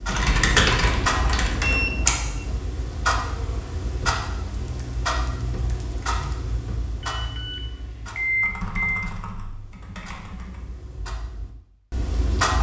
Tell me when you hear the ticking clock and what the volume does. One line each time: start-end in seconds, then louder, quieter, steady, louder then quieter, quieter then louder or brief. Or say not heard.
0.0-12.5 quieter.